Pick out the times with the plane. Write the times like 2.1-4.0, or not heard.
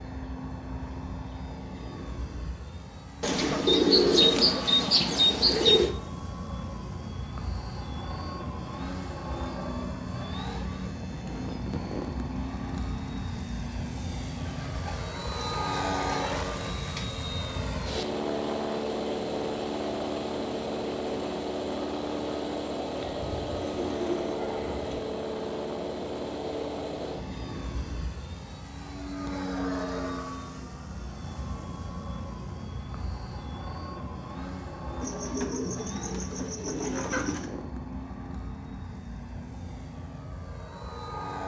0.0-41.4.